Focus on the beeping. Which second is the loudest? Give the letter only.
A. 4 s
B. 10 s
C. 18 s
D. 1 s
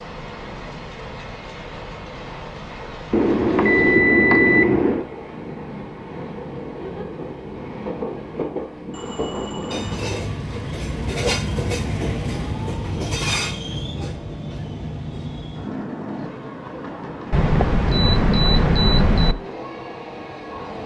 A.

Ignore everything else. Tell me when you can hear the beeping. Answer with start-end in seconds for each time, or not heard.
3.1-5.0, 8.9-10.1, 17.3-19.4.